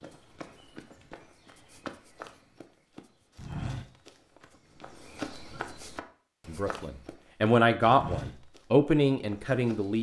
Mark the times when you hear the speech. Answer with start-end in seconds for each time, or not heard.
6.5-9.9.